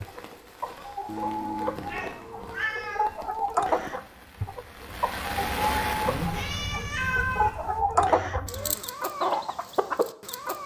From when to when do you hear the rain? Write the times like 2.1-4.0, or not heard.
0.0-7.8.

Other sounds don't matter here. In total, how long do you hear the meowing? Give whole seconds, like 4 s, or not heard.
4 s.